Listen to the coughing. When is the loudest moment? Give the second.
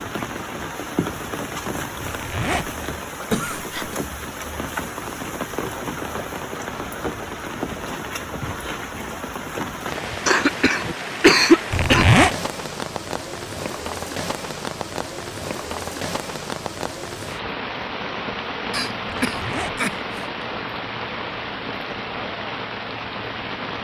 11 s.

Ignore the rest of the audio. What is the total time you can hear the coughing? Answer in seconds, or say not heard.
4 s.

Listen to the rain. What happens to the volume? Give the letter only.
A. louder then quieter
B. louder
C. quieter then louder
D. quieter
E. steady
E.